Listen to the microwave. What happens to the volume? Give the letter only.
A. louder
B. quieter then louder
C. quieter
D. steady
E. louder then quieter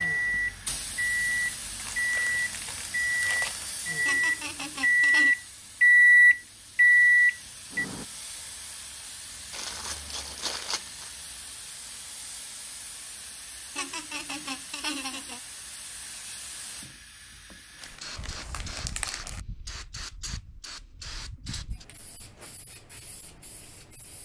A.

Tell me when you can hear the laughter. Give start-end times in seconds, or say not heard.
4.0-5.3, 13.8-15.4.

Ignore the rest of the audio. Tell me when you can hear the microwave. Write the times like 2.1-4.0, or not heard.
0.0-8.1.